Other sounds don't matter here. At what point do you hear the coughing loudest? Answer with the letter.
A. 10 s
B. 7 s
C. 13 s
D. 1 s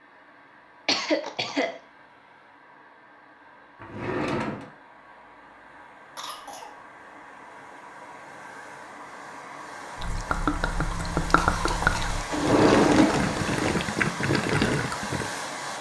D.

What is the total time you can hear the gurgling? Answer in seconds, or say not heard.
5 s.